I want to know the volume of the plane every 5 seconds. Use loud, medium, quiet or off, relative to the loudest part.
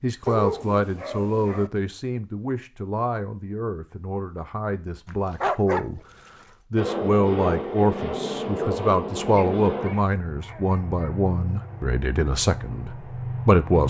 off, loud, medium.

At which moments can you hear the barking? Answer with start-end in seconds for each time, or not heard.
0.2-1.7, 5.0-6.3, 9.3-11.2.